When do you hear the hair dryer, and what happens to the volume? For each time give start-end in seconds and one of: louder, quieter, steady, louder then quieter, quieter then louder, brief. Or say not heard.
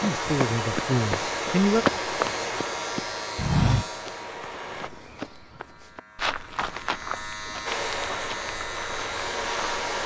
0.0-4.9 quieter
7.7-10.0 brief.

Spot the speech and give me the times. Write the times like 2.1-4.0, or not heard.
0.0-1.9.